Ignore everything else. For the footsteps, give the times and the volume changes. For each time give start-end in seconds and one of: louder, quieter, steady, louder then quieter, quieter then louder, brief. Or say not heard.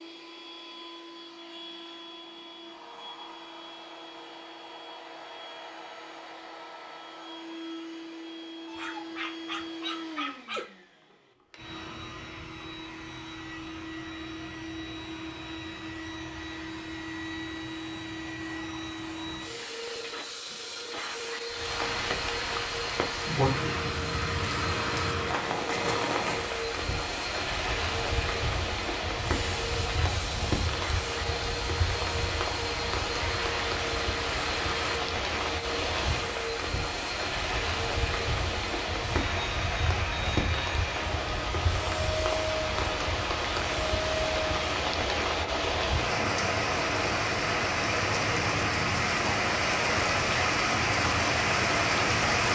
not heard.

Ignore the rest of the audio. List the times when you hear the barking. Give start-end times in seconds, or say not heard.
8.7-10.7.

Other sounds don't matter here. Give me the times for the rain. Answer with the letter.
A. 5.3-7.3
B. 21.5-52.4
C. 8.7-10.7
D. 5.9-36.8
B.